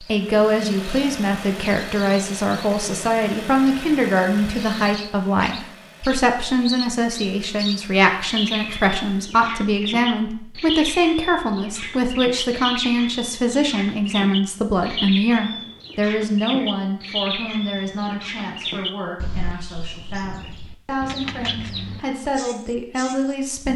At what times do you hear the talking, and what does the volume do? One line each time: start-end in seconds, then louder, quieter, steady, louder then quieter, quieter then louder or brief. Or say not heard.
0.0-23.7 quieter.